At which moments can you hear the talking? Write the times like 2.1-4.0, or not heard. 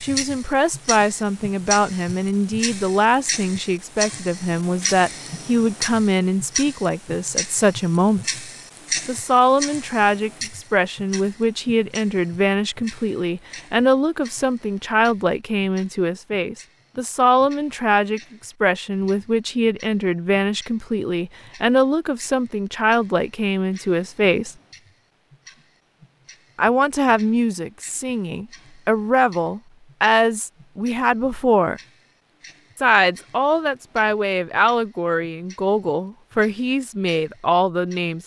0.0-8.2, 9.1-24.6, 26.6-31.8, 32.8-38.2.